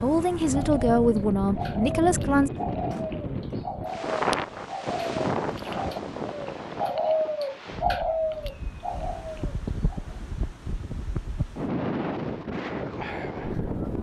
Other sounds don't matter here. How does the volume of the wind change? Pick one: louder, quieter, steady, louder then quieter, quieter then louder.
quieter then louder.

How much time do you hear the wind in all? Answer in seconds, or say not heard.
14 s.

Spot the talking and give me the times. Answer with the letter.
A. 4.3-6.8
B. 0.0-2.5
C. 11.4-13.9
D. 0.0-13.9
B.